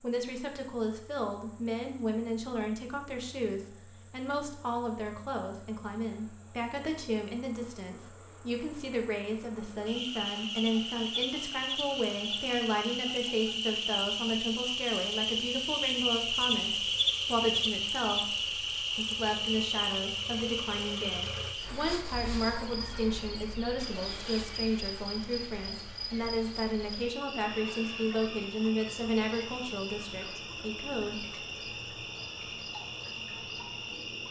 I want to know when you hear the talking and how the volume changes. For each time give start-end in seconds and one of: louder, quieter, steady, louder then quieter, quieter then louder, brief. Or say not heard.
0.0-31.2 steady.